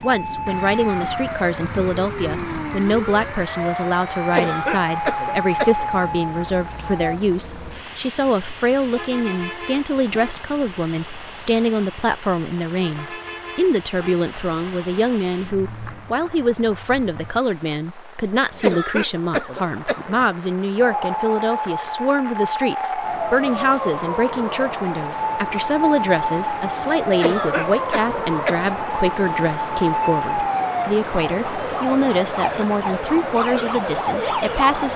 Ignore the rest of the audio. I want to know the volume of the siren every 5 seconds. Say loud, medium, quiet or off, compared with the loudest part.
loud, loud, off, off, loud, loud, loud.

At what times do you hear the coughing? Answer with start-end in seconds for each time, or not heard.
4.2-5.8, 18.6-20.1, 27.1-28.7.